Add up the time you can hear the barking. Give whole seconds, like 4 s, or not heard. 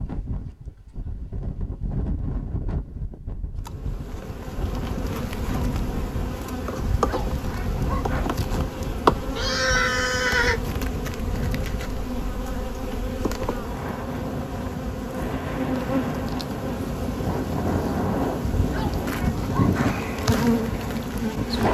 3 s.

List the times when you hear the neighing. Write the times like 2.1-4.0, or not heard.
9.3-10.6.